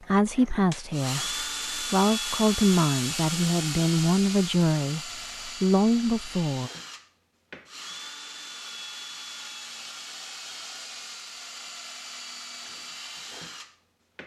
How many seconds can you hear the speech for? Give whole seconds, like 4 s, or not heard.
7 s.